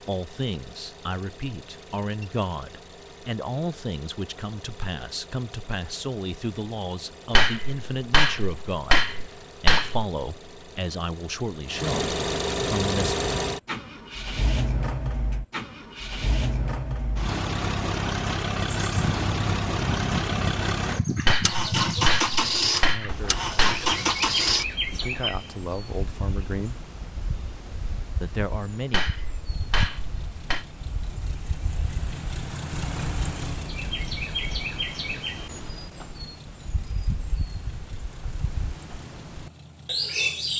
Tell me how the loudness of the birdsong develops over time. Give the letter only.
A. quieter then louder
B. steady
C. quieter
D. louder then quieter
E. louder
A.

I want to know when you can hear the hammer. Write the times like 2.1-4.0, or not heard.
7.3-10.1, 21.2-23.9, 28.9-30.6.